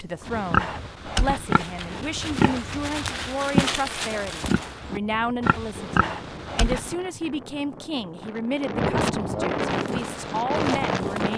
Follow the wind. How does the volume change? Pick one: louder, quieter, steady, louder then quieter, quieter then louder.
louder.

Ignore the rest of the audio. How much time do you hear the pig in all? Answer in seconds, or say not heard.
8 s.